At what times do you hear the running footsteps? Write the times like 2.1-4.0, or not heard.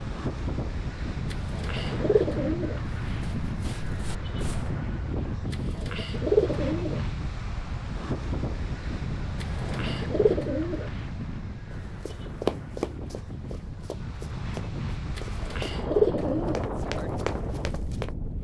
3.0-4.8, 11.7-18.1.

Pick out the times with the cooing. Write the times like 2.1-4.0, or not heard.
1.3-2.8, 5.5-7.0, 9.4-10.9, 15.2-16.6.